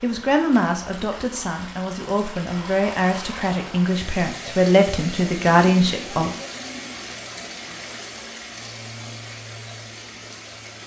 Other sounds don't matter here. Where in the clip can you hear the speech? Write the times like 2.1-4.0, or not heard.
0.0-6.3.